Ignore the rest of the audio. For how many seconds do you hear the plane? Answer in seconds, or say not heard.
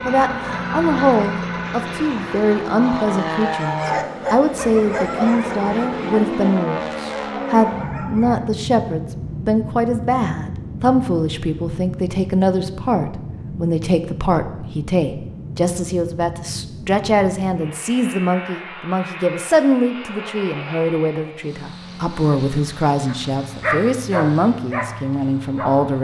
26 s.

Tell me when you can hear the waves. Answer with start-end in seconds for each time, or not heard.
not heard.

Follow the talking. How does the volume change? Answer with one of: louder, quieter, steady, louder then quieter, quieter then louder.
steady.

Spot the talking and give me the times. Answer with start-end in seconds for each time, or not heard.
0.1-25.9.